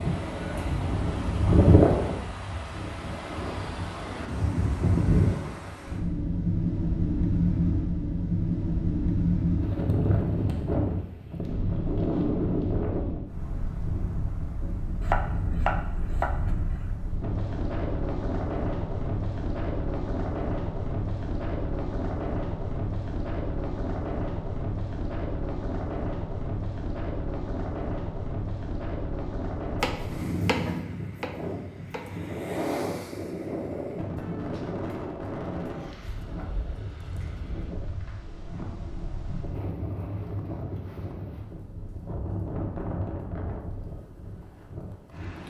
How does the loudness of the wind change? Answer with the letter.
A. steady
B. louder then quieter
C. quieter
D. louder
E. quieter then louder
C.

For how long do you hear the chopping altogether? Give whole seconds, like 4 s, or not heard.
4 s.